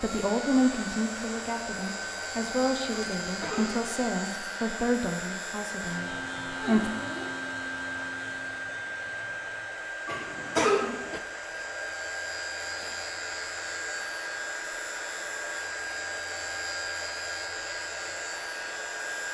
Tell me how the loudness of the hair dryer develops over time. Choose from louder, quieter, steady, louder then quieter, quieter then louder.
steady.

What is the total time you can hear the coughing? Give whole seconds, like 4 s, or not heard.
2 s.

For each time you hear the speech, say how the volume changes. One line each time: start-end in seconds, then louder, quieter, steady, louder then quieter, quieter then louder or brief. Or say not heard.
0.0-6.9 quieter.